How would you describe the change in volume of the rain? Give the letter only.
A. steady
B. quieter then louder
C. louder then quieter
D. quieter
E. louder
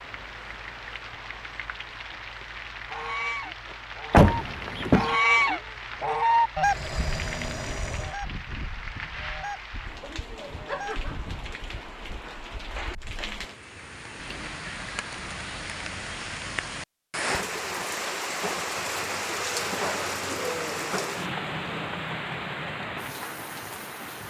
E.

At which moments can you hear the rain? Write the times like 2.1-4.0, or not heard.
0.0-24.2.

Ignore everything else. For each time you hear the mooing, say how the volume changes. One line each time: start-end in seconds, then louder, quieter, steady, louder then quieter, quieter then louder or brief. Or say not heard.
not heard.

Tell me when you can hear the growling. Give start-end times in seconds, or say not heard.
6.6-8.2, 20.2-21.9.